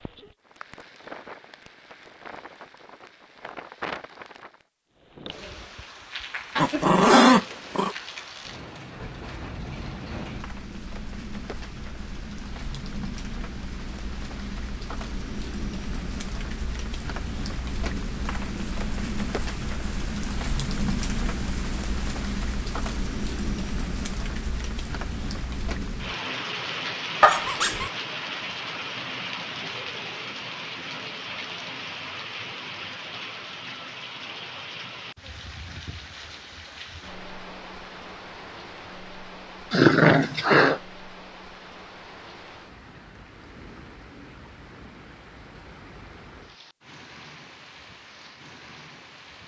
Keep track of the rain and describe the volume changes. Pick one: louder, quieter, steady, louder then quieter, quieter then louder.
louder then quieter.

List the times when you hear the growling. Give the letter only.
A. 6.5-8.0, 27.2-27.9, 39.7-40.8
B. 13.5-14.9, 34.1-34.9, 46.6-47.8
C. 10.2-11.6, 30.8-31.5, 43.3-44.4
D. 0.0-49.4
A.